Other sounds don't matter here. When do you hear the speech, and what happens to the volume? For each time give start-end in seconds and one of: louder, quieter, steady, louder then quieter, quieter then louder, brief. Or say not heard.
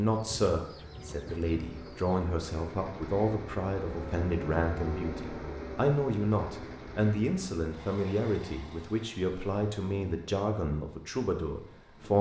0.0-12.1 steady.